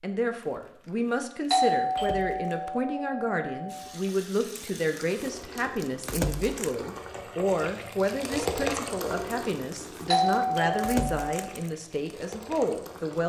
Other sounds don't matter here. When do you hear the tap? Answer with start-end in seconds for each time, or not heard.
3.6-13.2.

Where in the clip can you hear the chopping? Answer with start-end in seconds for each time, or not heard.
not heard.